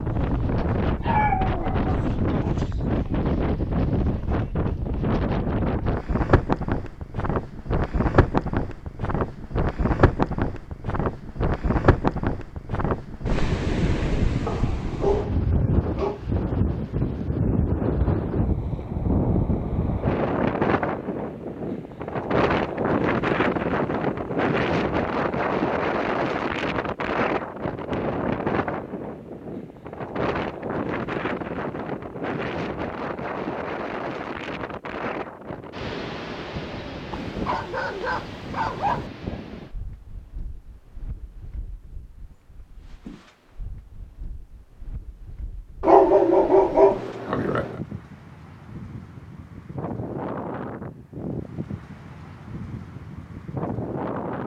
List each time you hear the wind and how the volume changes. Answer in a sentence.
You can hear the wind from 0.0 to 54.4 s, getting quieter.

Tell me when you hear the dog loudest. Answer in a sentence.
The loudest moment of the dog is at 46 seconds.